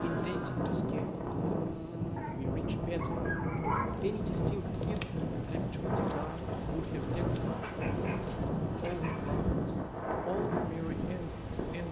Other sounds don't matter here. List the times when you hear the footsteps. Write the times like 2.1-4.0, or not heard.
not heard.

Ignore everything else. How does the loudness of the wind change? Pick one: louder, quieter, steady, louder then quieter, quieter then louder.
steady.